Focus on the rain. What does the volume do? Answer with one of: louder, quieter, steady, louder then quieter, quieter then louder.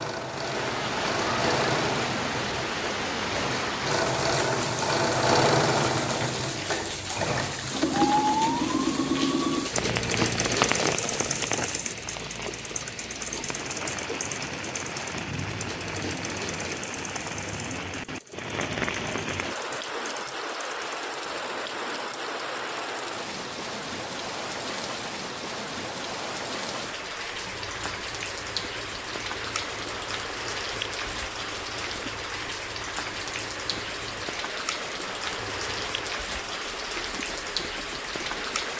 steady.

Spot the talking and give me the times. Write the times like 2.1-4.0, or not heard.
not heard.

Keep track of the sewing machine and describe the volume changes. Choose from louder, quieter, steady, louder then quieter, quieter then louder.
quieter.